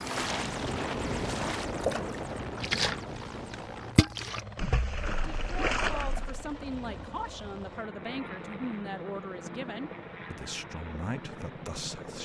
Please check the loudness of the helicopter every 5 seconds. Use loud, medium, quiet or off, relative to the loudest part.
loud, medium, medium.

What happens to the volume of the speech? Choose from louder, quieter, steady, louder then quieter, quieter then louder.
steady.